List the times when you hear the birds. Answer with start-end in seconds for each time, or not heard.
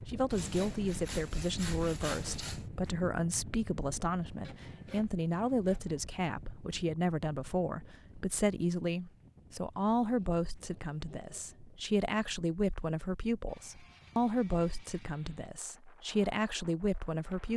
not heard.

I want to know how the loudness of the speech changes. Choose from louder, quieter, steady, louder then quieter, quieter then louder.
steady.